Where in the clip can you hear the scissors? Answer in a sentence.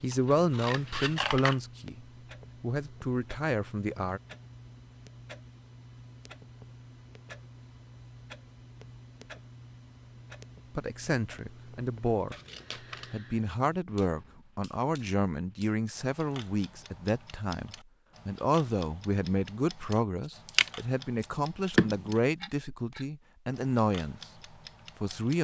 The scissors can be heard from 0.1 to 1.6 s, from 12.3 to 13.1 s and from 20.4 to 22.1 s.